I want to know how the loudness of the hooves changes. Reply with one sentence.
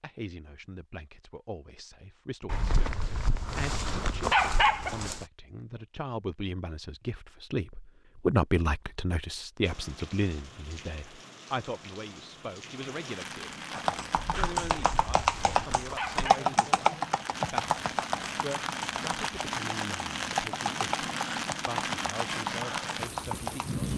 The volume of the hooves goes down.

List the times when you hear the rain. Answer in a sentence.
You can hear the rain from 9.6 to 23.9 s.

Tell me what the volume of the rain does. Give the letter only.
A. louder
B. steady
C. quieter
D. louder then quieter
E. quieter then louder
A.